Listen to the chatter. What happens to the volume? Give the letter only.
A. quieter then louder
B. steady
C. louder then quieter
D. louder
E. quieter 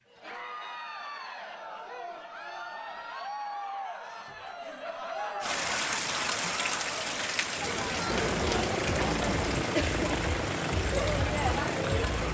D.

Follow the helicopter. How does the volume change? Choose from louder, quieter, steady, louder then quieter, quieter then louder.
steady.